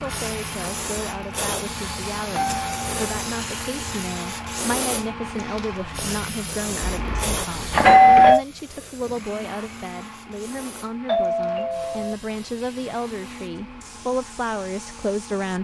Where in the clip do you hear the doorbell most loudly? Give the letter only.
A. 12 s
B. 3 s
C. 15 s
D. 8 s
D.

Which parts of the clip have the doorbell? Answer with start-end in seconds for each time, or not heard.
2.3-3.1, 6.8-8.4, 11.1-12.2.